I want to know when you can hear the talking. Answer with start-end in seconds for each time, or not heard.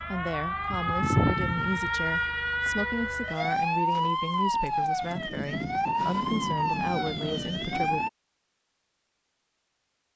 0.0-8.1.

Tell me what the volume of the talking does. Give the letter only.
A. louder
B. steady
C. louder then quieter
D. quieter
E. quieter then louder
B.